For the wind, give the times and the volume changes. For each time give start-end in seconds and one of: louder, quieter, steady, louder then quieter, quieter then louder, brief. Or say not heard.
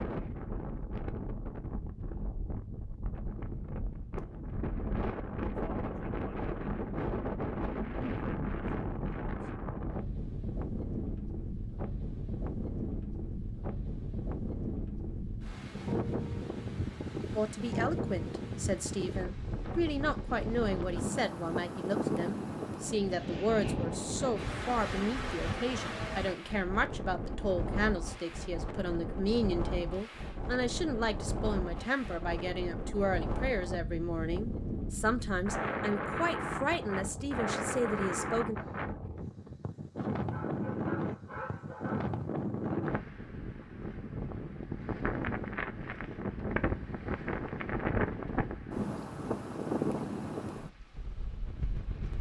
0.0-52.1 steady.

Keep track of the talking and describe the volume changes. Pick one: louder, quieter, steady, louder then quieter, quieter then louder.
steady.